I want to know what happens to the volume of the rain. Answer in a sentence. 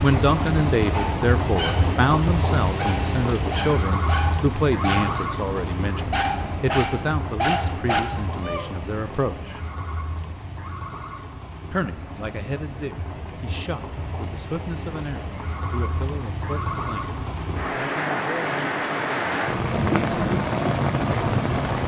The volume of the rain goes down, then up.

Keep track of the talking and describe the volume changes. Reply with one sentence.
The loudness of the talking goes down.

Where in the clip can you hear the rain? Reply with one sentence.
The rain can be heard from 0.0 to 21.8 s.